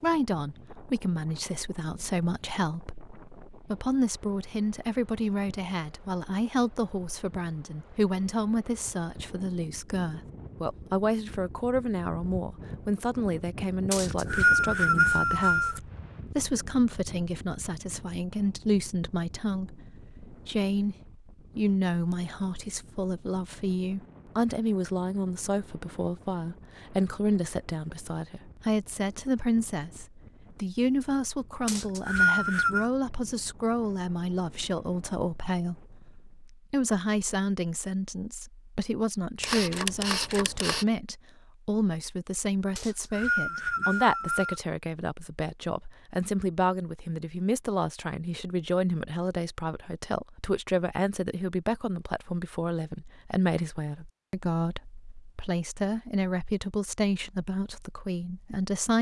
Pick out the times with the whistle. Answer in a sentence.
You can hear the whistle from 13.9 to 15.8 s, from 31.6 to 32.9 s and from 42.8 to 44.6 s.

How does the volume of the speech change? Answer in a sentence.
The loudness of the speech stays about the same.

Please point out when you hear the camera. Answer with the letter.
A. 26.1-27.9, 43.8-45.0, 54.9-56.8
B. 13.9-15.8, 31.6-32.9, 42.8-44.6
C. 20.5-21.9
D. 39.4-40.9
D.